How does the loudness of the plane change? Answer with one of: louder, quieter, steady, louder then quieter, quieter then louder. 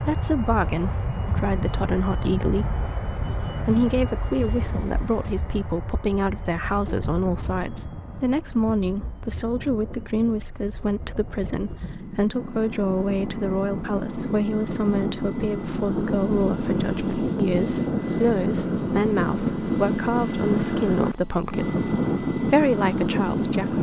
quieter then louder.